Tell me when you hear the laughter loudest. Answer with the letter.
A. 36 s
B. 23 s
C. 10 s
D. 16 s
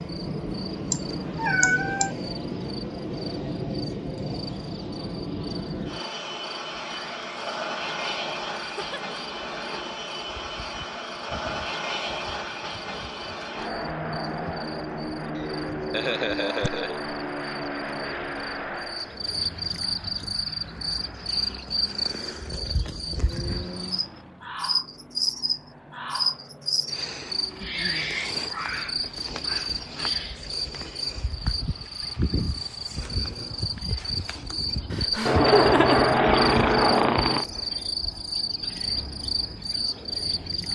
A.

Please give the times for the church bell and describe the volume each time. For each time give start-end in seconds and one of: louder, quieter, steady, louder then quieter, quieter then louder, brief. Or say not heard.
not heard.